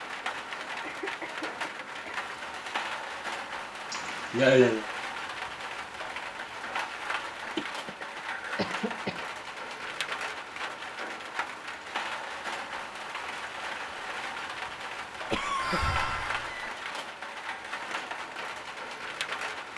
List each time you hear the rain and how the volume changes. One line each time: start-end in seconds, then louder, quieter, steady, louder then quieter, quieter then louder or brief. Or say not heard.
0.0-19.7 steady.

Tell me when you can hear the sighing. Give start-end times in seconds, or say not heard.
3.9-4.8, 7.5-8.7, 15.6-16.5.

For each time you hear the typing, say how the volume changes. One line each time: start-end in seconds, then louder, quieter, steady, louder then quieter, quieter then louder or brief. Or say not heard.
not heard.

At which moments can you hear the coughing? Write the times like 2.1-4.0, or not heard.
0.8-2.2, 8.6-9.2, 15.3-16.7.